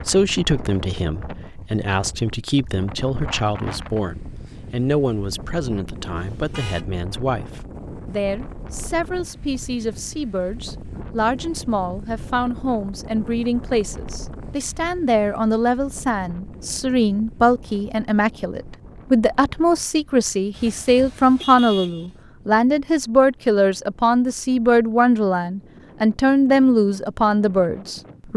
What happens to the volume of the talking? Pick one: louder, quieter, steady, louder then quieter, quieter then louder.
louder.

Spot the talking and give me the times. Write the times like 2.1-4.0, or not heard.
0.1-28.3.